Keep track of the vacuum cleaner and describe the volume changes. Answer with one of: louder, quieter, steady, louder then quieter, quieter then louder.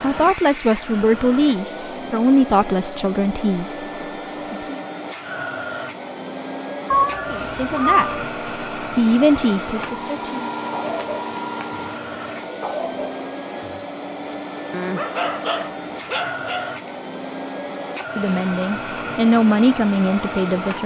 steady.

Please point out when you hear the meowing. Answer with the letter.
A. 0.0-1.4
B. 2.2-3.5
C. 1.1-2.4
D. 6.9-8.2
D.